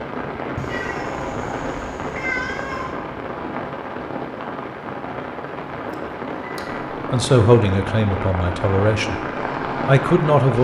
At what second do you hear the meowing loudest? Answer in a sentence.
The volume of the meowing peaks at 2 seconds.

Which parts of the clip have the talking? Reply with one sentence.
The talking can be heard from 7.0 to 10.5 s.